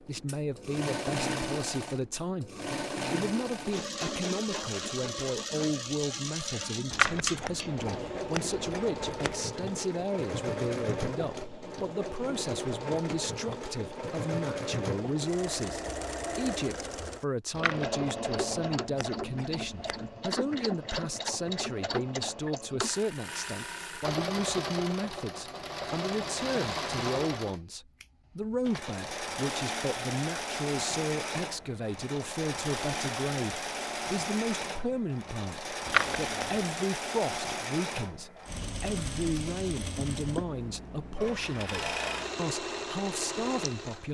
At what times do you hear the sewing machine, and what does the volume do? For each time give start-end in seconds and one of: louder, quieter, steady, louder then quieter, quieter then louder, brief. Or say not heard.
0.0-44.0 steady.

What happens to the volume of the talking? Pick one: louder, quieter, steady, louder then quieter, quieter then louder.
steady.